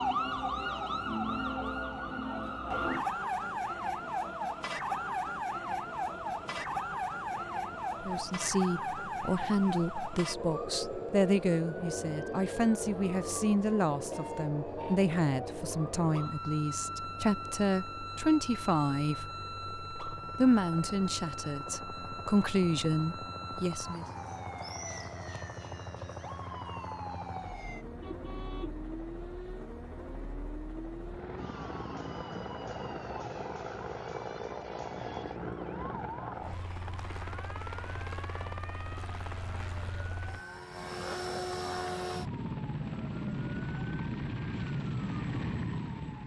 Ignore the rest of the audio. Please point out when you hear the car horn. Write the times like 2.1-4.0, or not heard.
27.7-29.0.